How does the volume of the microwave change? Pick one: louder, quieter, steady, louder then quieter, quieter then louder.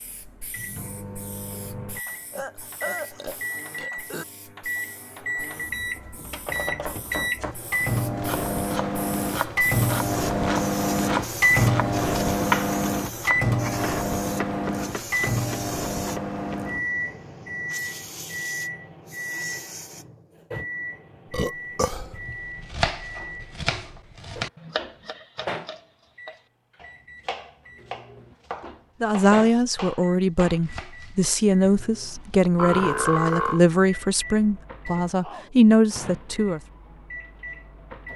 louder then quieter.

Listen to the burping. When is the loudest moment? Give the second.
33 s.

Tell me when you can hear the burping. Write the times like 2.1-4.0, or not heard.
2.3-4.2, 21.3-22.1, 32.5-33.6.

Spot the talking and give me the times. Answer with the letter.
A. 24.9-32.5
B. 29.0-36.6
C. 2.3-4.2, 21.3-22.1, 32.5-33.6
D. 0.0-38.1
B.